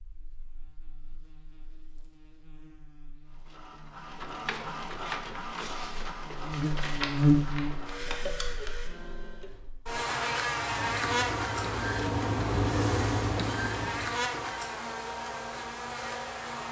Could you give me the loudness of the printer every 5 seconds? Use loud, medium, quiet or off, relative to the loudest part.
medium, medium, loud, off.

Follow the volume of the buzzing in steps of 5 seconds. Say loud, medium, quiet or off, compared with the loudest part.
quiet, loud, loud, medium.